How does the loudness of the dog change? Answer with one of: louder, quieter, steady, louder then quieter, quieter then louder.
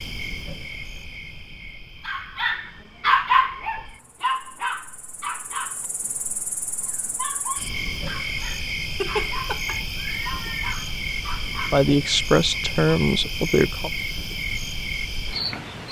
quieter.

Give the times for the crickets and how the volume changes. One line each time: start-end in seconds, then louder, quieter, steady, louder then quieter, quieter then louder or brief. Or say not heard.
0.0-15.8 louder.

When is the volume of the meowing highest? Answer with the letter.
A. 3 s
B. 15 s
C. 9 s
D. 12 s
C.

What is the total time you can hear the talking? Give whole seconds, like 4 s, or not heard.
2 s.